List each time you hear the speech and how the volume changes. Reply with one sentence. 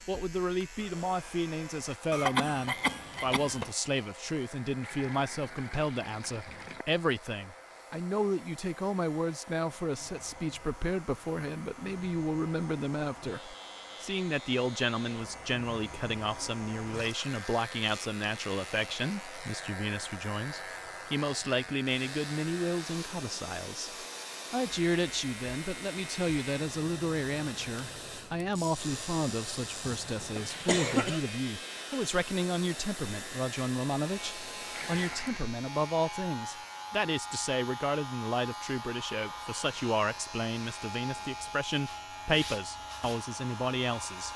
The speech can be heard from 0.1 to 44.3 s, at a steady volume.